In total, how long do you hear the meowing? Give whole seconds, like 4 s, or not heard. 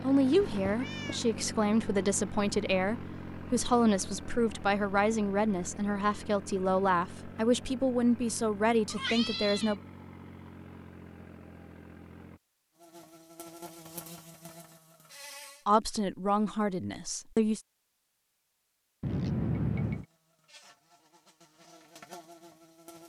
3 s.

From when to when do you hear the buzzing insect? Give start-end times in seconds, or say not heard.
12.8-15.7, 19.9-23.0.